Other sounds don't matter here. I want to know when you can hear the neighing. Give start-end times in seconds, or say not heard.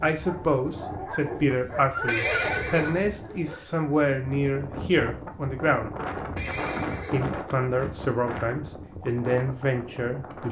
2.0-3.6, 6.3-7.9.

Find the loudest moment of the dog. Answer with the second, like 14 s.
2 s.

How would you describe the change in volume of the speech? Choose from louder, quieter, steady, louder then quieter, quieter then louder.
steady.